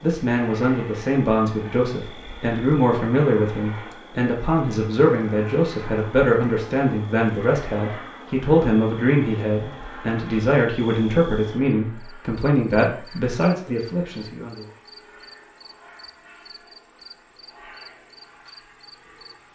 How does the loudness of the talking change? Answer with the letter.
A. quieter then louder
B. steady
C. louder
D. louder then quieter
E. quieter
B.